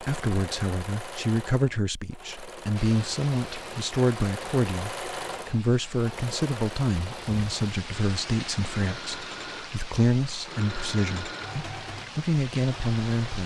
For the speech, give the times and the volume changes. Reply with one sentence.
You can hear the speech from 0.0 to 13.4 s, at a steady volume.